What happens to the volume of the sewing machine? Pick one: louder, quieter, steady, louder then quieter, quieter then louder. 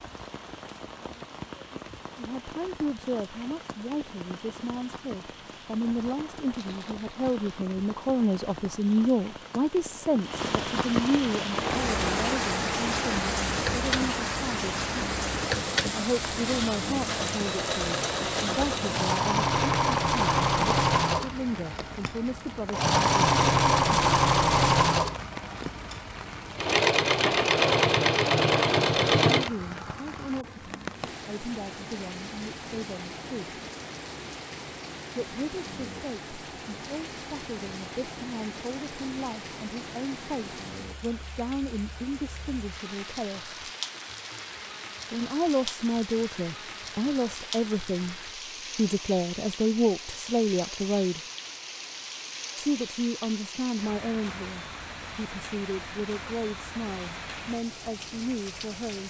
louder.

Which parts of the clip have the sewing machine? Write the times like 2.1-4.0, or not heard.
11.4-29.5.